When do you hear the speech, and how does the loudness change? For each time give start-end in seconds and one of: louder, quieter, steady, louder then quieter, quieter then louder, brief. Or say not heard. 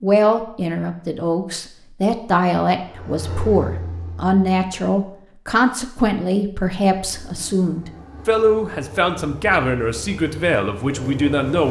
0.0-11.6 steady.